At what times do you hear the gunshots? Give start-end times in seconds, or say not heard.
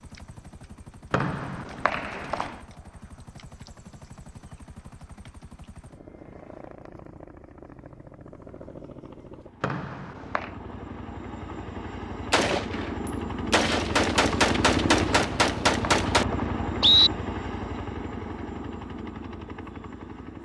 12.3-16.2.